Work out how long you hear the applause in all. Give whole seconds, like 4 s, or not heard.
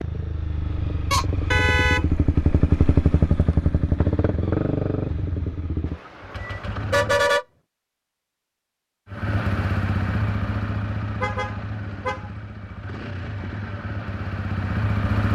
not heard.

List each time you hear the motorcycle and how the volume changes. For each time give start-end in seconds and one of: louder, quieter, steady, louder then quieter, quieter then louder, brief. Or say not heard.
0.0-7.3 louder then quieter
9.1-15.3 quieter then louder.